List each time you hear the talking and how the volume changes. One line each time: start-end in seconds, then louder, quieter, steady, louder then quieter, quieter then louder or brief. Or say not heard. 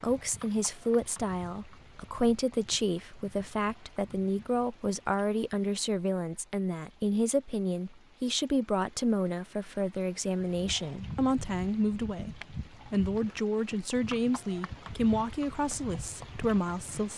0.0-17.1 steady.